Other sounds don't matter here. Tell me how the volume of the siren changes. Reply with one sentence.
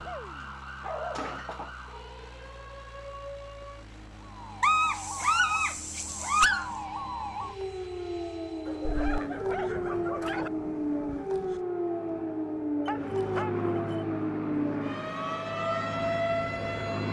The volume of the siren goes up.